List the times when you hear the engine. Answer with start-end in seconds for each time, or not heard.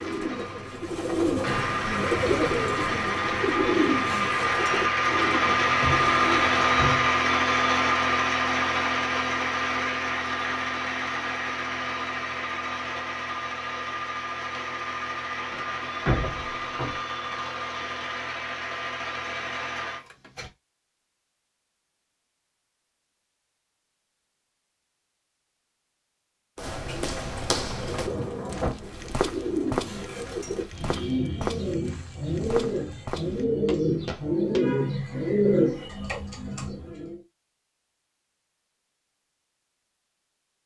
0.0-20.5.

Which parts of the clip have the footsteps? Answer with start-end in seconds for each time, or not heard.
26.6-34.6.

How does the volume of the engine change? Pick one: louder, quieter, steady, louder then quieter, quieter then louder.
louder then quieter.